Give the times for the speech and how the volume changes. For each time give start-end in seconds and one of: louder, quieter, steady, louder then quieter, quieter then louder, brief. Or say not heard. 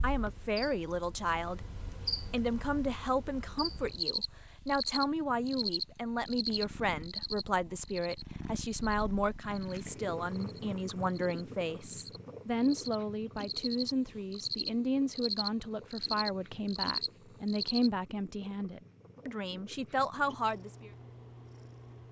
0.0-20.9 steady.